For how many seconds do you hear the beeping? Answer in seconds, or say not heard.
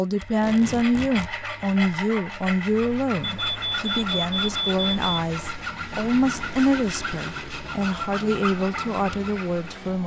2 s.